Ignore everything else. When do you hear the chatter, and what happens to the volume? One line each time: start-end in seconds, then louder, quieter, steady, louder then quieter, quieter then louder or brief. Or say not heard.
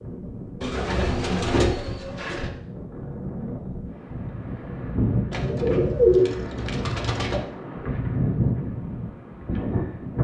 not heard.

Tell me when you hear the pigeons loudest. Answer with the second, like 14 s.
6 s.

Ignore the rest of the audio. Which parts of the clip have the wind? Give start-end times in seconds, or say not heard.
0.0-10.1.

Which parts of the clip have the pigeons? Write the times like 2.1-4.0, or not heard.
0.6-2.5, 5.3-7.4.